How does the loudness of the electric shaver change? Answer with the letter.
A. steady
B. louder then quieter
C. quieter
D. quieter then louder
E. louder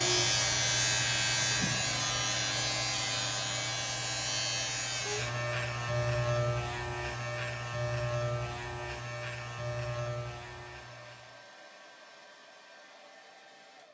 C.